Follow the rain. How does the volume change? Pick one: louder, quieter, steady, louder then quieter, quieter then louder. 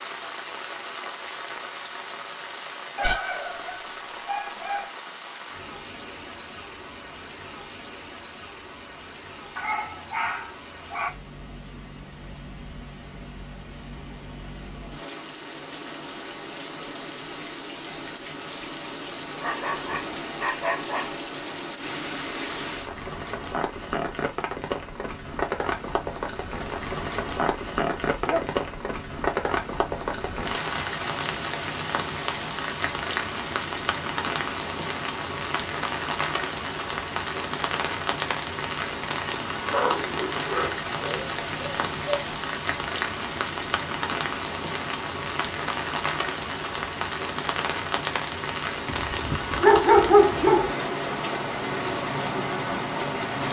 louder.